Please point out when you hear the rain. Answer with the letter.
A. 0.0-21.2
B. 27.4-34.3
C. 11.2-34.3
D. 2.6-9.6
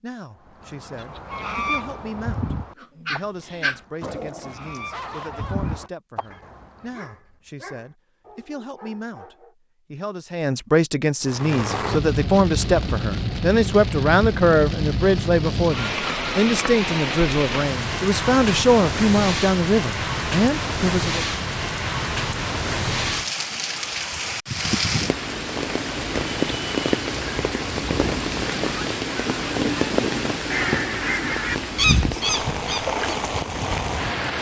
C.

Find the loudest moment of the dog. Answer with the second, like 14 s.
4 s.